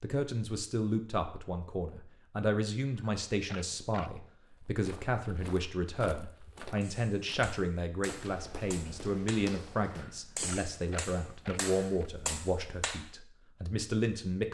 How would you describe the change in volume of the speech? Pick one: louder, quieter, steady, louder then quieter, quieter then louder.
steady.